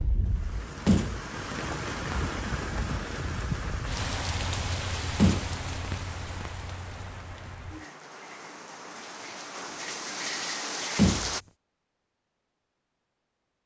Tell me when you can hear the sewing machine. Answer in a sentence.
You can't hear the sewing machine here.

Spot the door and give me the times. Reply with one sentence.
You can hear the door from 0.8 to 2.1 s, from 5.2 to 6.5 s and from 10.9 to 11.3 s.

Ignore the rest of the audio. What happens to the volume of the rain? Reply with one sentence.
The volume of the rain goes down, then up.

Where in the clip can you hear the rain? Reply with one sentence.
The rain can be heard from 0.0 to 11.4 s.